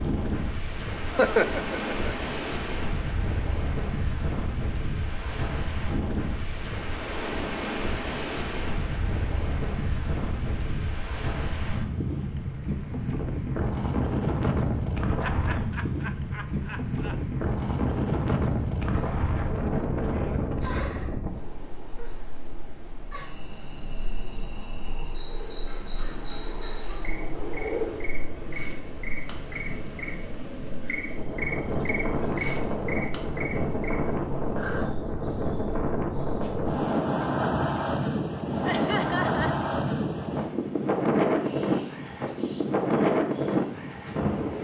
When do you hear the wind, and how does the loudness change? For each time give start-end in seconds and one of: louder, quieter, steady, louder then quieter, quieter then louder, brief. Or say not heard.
0.0-44.5 louder.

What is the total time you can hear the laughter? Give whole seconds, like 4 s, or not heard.
4 s.